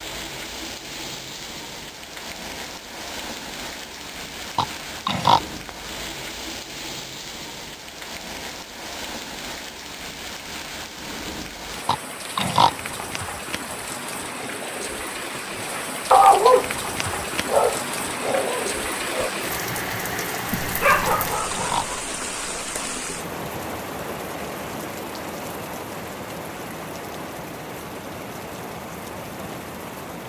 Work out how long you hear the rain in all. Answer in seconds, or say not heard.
30 s.